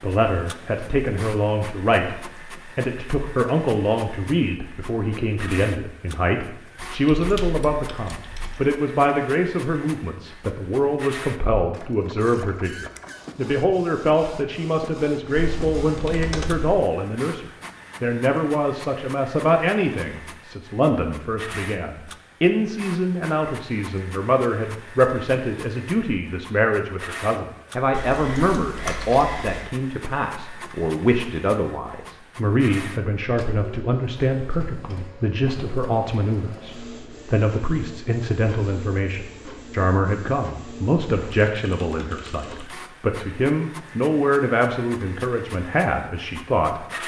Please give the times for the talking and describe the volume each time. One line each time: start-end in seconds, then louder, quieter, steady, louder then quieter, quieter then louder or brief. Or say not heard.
0.0-46.8 steady.